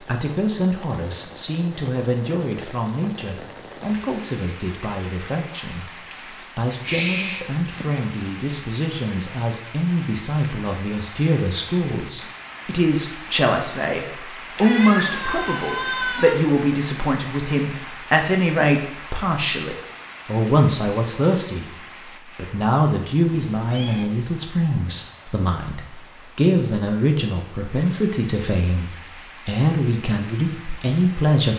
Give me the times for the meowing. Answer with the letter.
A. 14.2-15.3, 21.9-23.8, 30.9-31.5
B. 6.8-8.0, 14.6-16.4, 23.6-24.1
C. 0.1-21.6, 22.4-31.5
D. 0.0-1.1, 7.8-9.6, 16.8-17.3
B.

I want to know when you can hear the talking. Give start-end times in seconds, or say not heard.
0.1-21.6, 22.4-31.5.